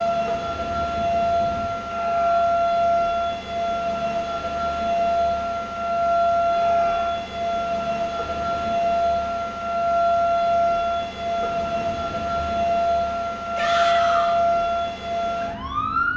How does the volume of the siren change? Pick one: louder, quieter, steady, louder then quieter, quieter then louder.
steady.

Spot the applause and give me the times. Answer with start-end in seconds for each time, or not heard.
not heard.